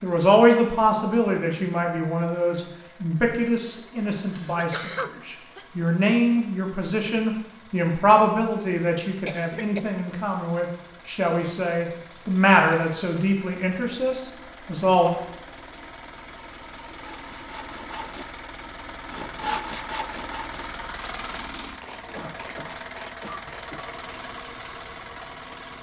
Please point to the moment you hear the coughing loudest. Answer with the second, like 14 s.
5 s.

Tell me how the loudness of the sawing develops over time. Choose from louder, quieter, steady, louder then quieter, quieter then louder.
louder then quieter.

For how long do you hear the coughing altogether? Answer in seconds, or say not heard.
5 s.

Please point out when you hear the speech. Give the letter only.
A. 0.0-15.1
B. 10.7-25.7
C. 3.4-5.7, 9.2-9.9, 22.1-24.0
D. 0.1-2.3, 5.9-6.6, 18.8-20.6
A.